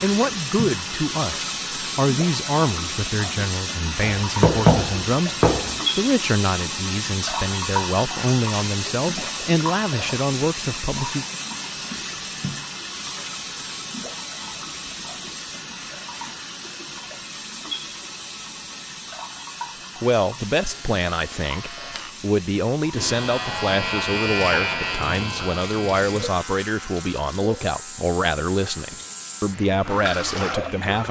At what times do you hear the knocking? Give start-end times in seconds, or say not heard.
4.0-5.8.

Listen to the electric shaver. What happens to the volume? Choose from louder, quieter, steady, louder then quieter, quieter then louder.
louder then quieter.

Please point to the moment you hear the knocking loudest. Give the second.
5 s.